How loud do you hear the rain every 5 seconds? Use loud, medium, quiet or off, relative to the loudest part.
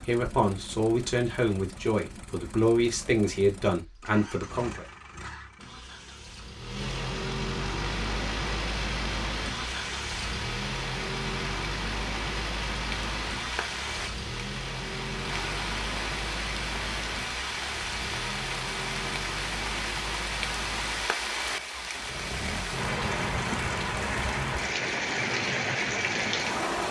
off, medium, medium, medium, loud, loud.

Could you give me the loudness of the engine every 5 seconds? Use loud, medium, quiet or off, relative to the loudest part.
medium, loud, loud, loud, medium, medium.